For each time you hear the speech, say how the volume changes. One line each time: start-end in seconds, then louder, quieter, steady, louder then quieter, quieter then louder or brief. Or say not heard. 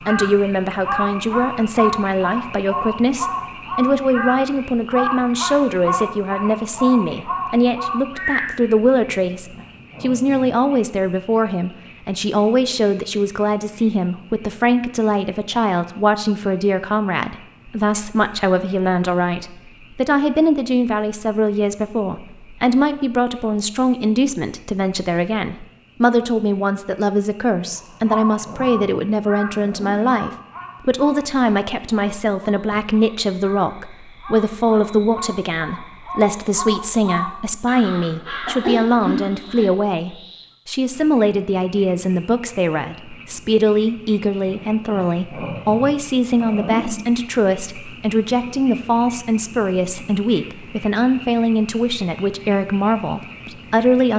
0.1-54.1 steady.